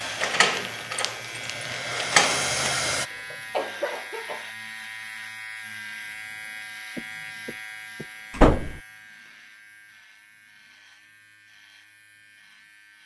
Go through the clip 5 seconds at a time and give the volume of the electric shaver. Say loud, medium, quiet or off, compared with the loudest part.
loud, loud, quiet.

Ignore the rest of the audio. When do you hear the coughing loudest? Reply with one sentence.
The loudest moment of the coughing is at 4 seconds.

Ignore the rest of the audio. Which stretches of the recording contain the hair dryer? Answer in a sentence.
You can hear the hair dryer from 0.0 to 3.1 s.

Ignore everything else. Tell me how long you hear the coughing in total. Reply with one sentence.
The coughing can be heard for 3 seconds in total.